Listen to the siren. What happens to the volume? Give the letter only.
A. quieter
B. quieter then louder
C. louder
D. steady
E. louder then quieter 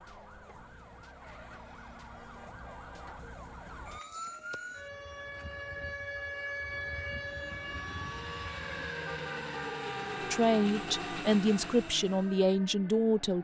E.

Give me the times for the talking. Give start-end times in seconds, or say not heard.
10.2-13.3.